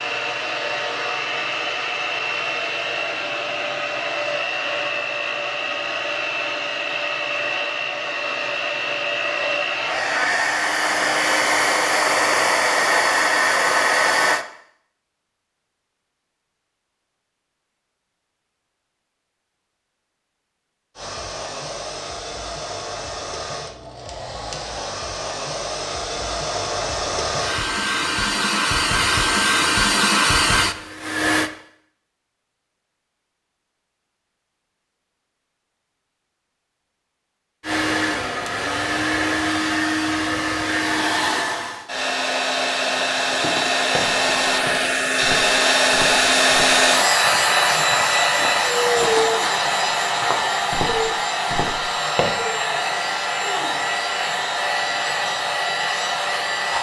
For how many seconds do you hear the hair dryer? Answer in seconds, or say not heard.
44 s.